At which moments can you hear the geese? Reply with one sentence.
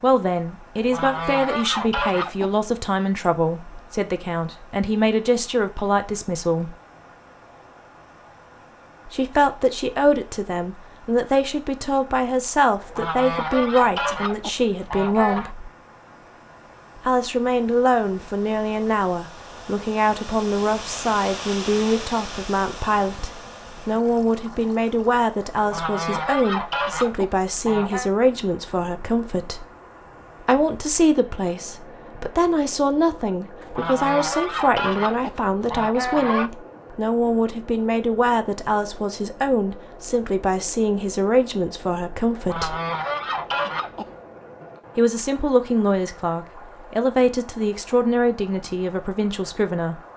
You can hear the geese from 0.8 to 2.6 s, from 12.8 to 15.6 s, from 25.6 to 28.1 s, from 33.6 to 36.5 s and from 42.4 to 44.1 s.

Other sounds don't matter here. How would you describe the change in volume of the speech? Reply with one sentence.
The volume of the speech stays about the same.